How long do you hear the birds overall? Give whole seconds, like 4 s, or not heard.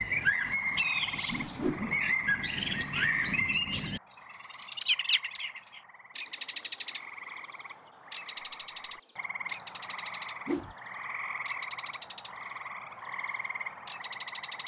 11 s.